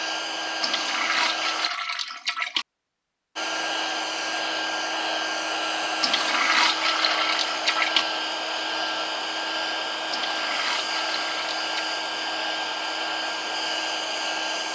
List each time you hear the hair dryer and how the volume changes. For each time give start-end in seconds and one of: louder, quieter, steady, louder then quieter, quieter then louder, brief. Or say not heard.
0.0-1.7 brief
3.4-14.6 steady.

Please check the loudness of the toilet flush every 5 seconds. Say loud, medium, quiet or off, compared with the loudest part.
loud, loud, medium.